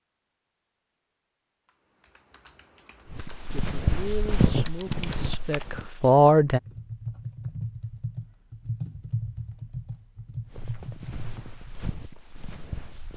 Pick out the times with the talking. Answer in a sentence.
You can hear the talking from 3.5 to 6.6 s.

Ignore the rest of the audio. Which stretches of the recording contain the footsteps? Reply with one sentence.
The footsteps can be heard from 3.0 to 5.8 s and from 10.5 to 13.1 s.